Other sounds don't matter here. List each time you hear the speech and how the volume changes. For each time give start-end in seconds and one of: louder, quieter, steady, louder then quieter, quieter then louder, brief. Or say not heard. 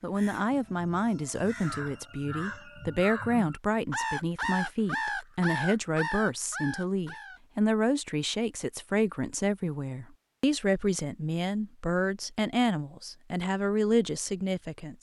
0.0-14.9 steady.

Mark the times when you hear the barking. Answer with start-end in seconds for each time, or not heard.
not heard.